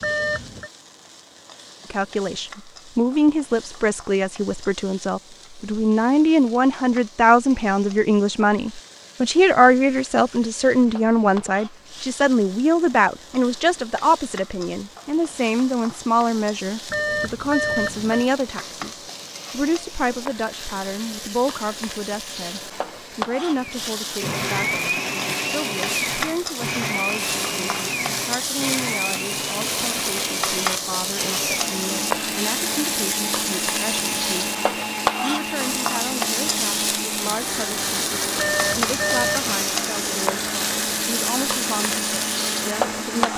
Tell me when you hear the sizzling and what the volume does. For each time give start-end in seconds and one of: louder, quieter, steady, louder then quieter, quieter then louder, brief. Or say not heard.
0.0-43.3 louder.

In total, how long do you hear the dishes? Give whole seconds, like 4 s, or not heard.
not heard.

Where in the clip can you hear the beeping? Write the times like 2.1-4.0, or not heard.
0.0-0.7, 16.9-18.2, 38.4-39.6.